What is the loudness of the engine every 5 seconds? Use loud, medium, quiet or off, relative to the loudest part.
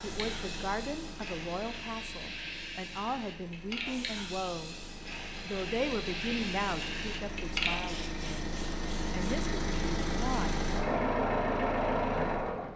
quiet, medium, loud.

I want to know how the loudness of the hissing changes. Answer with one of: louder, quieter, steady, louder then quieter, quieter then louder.
louder.